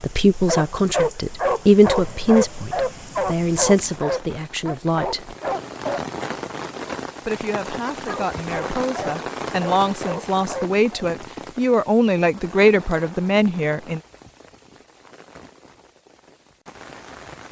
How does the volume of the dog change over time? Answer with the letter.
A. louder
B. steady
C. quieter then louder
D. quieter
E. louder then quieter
D.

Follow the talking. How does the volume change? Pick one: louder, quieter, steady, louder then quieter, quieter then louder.
quieter then louder.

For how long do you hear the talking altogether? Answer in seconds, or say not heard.
12 s.